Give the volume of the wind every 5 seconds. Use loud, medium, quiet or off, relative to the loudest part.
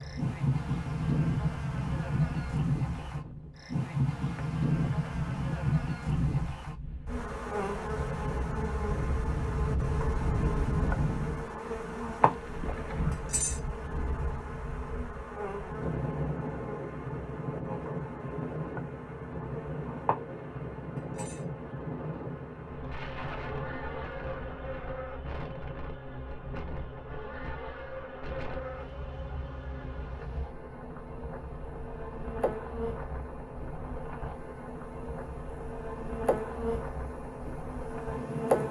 medium, loud, loud, loud, loud, medium, medium, medium.